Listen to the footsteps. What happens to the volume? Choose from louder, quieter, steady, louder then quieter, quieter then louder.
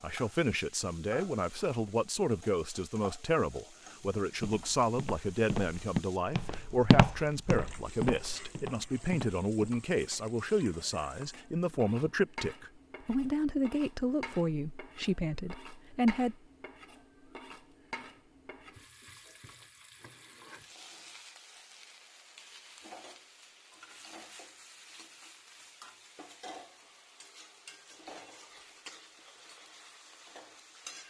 louder then quieter.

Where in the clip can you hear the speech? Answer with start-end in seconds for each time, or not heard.
0.0-16.4.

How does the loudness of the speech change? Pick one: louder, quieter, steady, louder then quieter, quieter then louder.
steady.